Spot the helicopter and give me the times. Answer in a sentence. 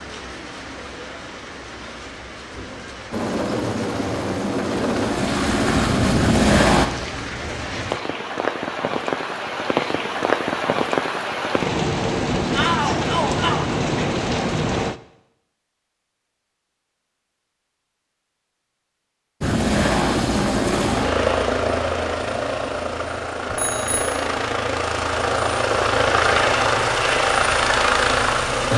The helicopter can be heard from 3.1 to 6.8 s and from 19.4 to 28.7 s.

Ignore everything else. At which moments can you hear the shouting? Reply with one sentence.
The shouting can be heard from 12.5 to 13.6 s.